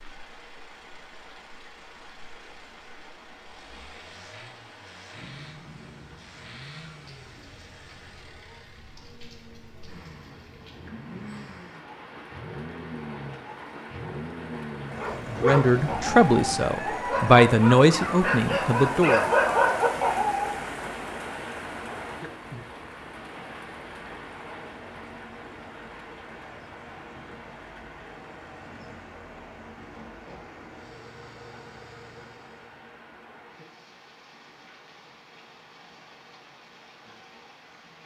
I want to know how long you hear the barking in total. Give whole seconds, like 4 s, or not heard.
6 s.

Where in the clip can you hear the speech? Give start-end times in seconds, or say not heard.
15.2-19.2.